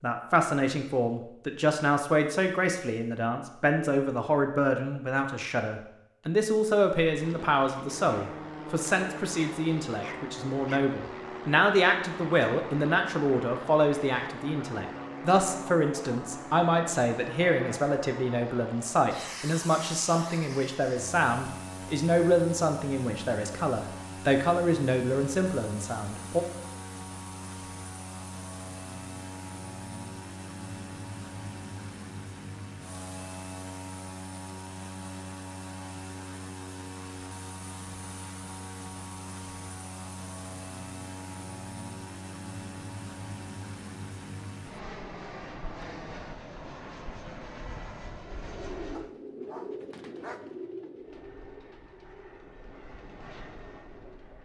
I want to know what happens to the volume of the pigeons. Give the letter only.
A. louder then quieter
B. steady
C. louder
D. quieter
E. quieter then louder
D.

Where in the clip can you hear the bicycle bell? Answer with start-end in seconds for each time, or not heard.
not heard.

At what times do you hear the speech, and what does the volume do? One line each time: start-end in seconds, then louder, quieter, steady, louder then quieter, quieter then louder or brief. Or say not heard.
0.0-26.4 steady.